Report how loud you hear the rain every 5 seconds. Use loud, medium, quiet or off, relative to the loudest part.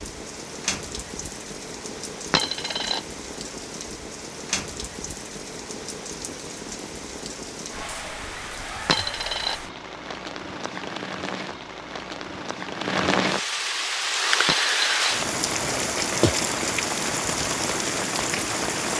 medium, medium, loud, loud.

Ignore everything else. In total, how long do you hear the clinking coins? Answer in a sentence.
The clinking coins can be heard for 2 seconds in total.